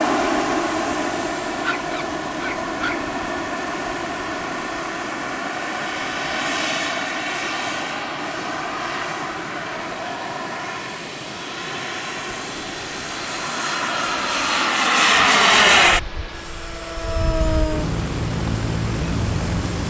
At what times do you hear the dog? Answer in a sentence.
The dog can be heard from 1.6 to 3.1 s.